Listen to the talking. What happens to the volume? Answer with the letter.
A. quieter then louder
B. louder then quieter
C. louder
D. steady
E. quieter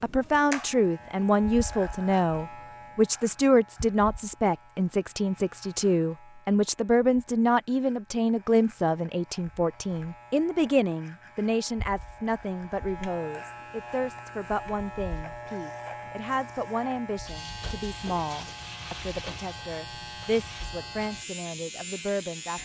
E.